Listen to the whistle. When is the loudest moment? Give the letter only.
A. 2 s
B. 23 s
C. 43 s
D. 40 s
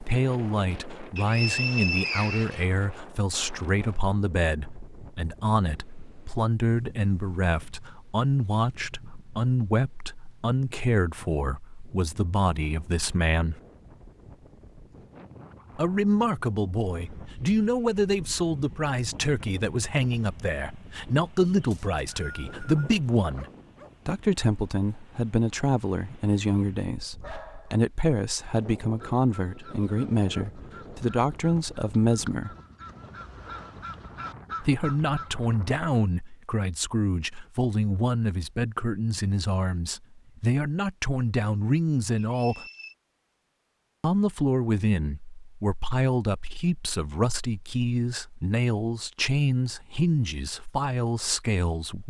A.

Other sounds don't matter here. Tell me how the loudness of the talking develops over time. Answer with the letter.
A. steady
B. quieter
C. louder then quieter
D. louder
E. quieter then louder
A.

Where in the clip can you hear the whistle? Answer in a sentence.
The whistle can be heard from 1.1 to 2.6 s, from 21.7 to 23.0 s and from 42.1 to 43.0 s.